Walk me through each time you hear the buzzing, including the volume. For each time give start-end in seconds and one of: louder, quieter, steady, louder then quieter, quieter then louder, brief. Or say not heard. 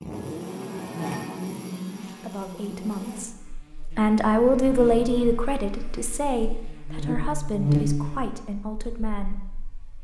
0.0-9.9 quieter then louder.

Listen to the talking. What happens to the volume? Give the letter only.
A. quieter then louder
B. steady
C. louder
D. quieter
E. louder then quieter
E.